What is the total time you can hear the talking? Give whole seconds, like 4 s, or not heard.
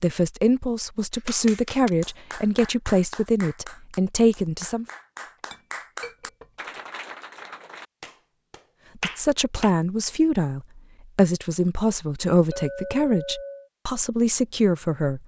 11 s.